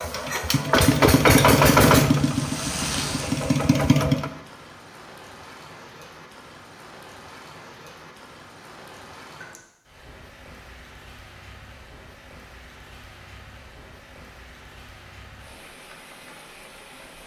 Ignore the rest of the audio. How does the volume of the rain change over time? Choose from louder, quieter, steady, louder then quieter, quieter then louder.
quieter.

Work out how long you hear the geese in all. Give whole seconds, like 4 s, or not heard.
not heard.